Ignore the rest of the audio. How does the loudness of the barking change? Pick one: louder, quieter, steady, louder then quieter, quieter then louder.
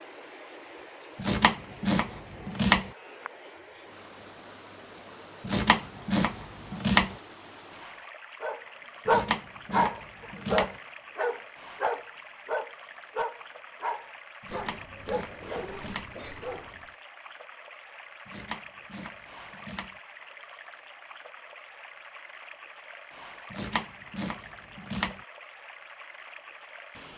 quieter.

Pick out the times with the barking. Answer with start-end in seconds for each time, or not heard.
8.4-16.9.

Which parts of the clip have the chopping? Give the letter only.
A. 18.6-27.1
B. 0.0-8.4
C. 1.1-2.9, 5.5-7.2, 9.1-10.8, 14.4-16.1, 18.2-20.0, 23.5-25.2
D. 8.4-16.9
C.